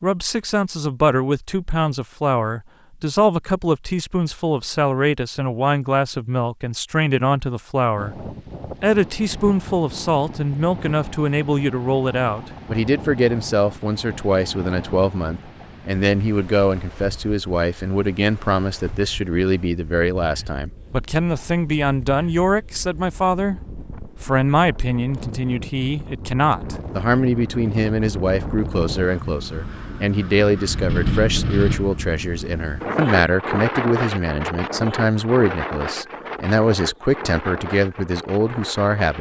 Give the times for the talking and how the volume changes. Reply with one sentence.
The talking can be heard from 0.0 to 39.1 s, at a steady volume.